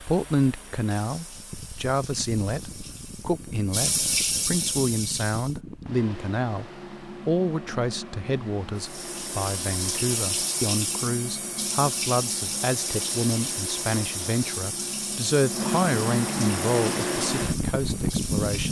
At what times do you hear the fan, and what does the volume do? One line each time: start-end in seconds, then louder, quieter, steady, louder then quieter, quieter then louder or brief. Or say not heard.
0.0-18.6 louder.